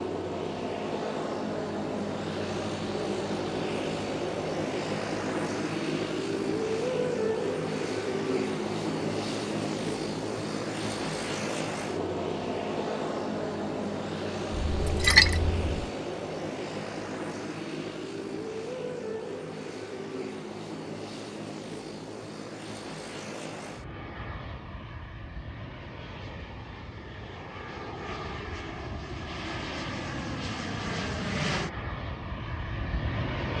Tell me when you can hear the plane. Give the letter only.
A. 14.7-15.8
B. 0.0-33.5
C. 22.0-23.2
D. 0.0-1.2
B.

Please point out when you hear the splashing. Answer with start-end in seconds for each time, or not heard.
14.7-15.8.